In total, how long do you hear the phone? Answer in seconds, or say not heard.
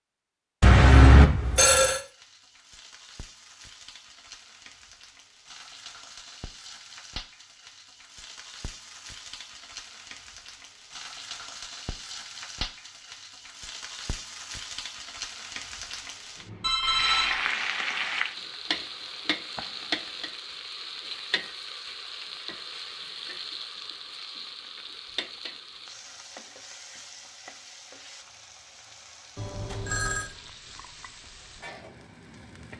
3 s.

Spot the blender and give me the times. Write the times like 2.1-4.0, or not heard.
not heard.